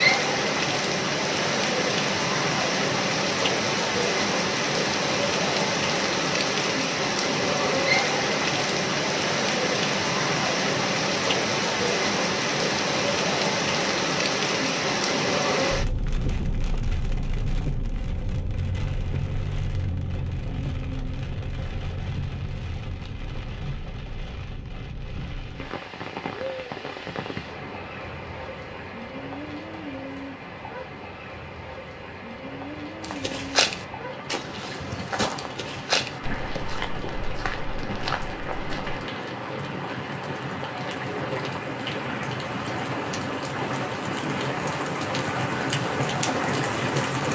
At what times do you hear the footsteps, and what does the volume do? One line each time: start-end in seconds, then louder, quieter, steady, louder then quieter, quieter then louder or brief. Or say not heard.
33.0-39.0 quieter.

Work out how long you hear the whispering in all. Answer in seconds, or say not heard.
not heard.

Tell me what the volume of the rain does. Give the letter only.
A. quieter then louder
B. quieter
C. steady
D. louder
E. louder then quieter
A.